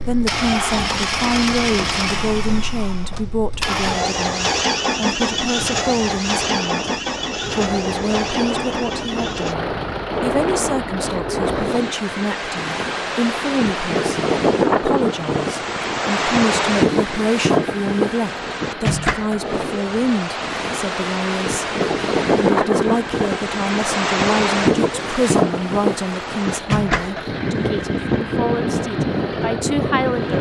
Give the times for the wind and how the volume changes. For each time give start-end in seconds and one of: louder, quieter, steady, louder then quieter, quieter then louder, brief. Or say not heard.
0.0-30.3 louder.